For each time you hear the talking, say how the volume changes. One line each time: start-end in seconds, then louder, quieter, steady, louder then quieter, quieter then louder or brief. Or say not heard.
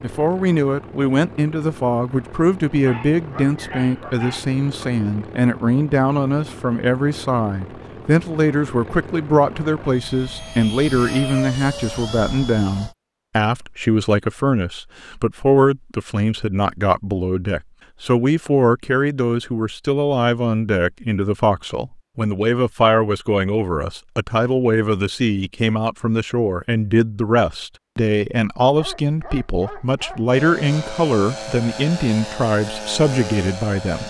0.0-34.0 steady.